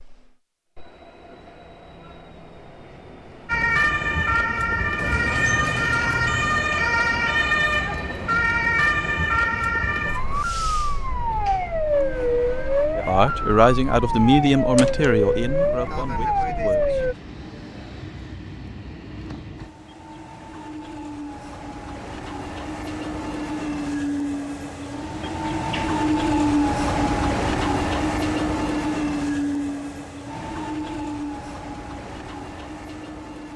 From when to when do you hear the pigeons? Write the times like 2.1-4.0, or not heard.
not heard.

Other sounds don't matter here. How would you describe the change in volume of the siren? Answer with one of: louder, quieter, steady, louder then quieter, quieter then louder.
steady.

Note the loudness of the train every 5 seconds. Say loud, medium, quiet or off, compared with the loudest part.
quiet, quiet, quiet, quiet, medium, loud, medium.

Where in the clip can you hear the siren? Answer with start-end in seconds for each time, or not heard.
3.5-17.1.